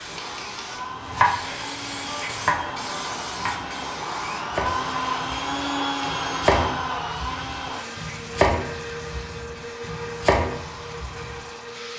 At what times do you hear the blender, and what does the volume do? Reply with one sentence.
The blender can be heard from 0.0 to 11.9 s, getting louder then quieter.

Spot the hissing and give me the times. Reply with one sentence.
You can hear the hissing from 0.0 to 11.9 s.